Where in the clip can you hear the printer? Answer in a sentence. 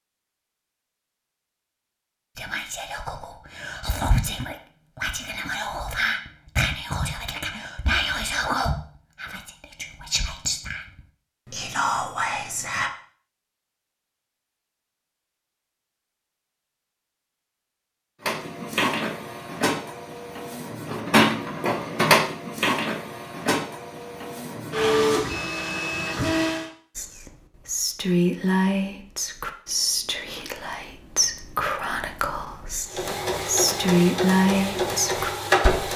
You can hear the printer from 18.2 to 26.7 s and from 32.9 to 35.9 s.